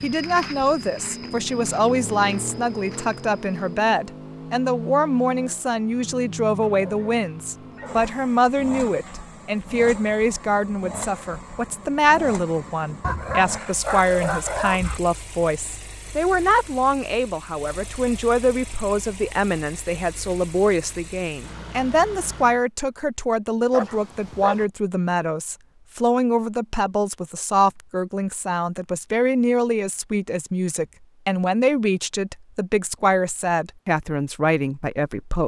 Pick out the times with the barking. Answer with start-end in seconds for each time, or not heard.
6.6-8.2, 13.0-15.0, 23.7-24.6.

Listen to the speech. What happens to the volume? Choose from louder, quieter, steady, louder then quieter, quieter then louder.
steady.